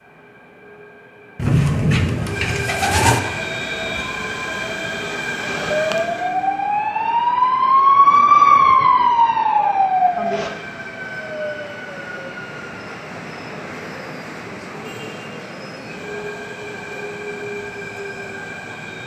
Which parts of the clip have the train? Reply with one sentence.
The train can be heard from 0.0 to 19.0 s.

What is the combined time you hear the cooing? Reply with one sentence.
You can hear the cooing for 2 seconds altogether.